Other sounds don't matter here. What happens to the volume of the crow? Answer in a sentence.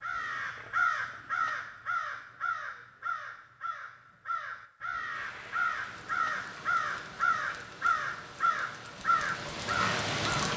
The volume of the crow goes down, then up.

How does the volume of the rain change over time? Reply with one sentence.
The volume of the rain goes up.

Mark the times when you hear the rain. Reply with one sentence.
You can hear the rain from 5.0 to 10.5 s.